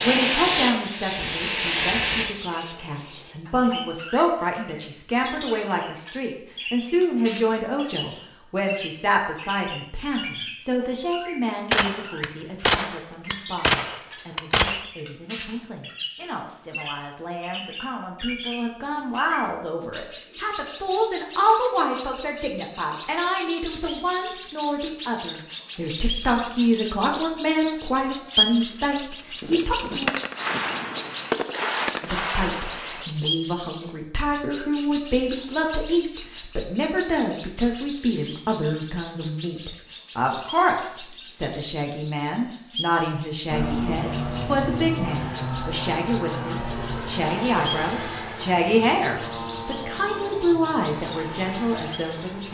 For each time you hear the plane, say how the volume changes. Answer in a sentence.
The plane can be heard briefly from 0.0 to 2.2 s; and from 43.5 to 52.4 s, getting quieter.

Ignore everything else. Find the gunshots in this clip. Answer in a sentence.
You can hear the gunshots from 11.7 to 14.8 s and from 29.4 to 33.0 s.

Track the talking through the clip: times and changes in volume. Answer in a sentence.
You can hear the talking from 0.0 to 30.1 s, getting quieter then louder; and from 32.0 to 52.4 s, at a steady volume.